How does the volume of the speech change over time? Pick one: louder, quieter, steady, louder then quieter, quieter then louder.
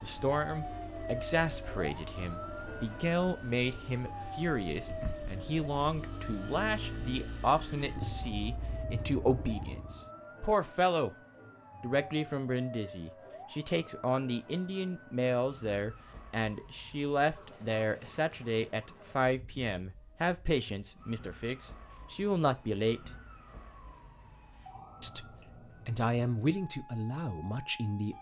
steady.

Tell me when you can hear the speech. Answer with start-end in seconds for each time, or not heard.
0.0-11.2, 11.8-23.1, 25.0-28.1.